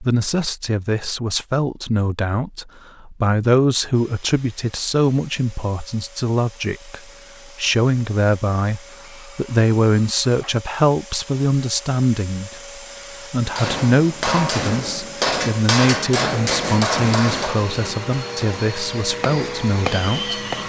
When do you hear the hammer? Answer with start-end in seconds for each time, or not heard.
13.4-20.6.